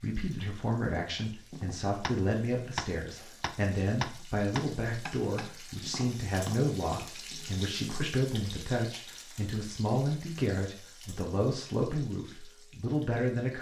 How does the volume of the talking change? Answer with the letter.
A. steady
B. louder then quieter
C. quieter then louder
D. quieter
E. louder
A.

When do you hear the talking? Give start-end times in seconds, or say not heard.
0.0-13.5.